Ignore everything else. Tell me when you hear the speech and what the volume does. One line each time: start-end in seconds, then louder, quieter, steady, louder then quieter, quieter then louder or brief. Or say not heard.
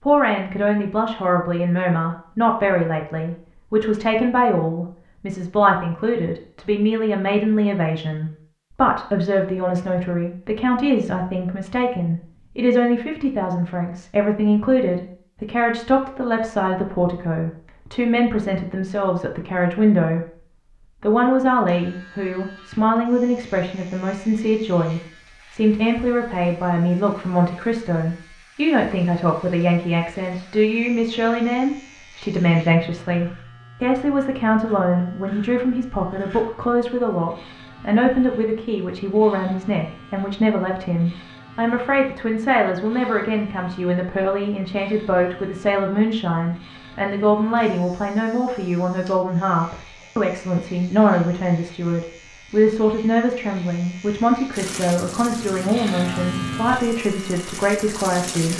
0.0-20.4 steady
21.0-58.5 steady.